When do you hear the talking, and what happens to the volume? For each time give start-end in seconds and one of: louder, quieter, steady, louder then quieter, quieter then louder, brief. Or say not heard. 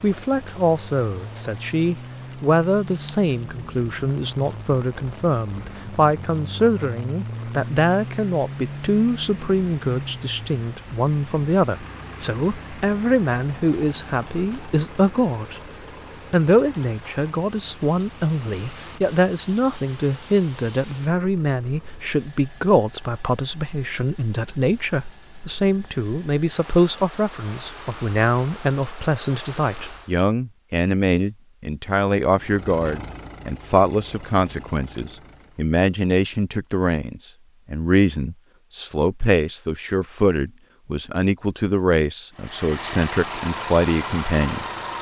0.0-15.6 steady
16.3-44.6 steady.